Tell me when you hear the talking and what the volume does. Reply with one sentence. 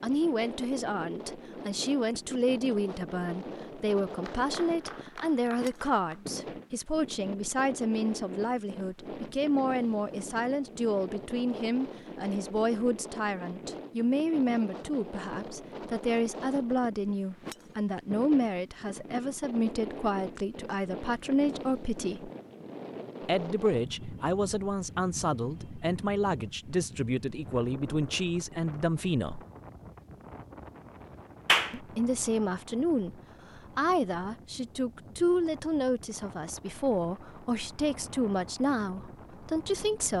The talking can be heard from 0.0 to 22.3 s, at a steady volume; from 23.2 to 29.4 s, at a steady volume; and from 31.7 to 40.1 s, at a steady volume.